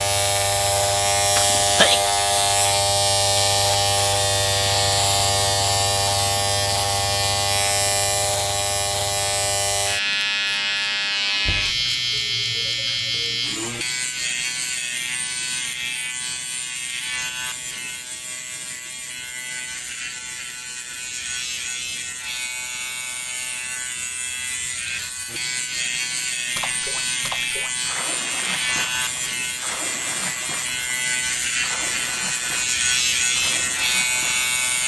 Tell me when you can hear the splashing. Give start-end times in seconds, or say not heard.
26.6-34.5.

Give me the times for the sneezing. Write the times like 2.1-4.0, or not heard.
1.4-2.0.